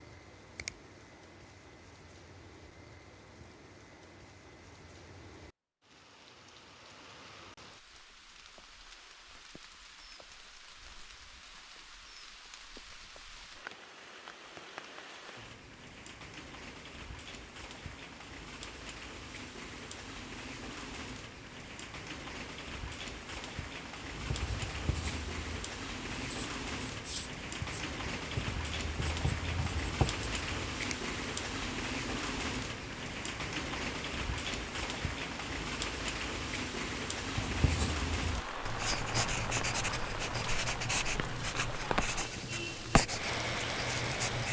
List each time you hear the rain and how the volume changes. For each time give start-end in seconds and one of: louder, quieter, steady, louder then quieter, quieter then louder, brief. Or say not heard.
0.0-44.4 louder.